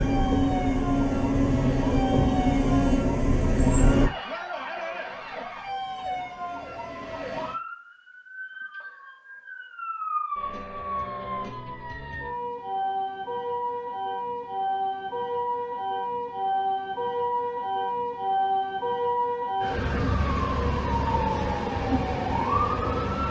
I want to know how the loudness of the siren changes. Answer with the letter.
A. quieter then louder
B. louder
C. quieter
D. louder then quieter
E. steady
B.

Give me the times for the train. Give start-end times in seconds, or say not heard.
0.0-4.1.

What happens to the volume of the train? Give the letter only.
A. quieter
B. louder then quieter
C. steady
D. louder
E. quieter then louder
C.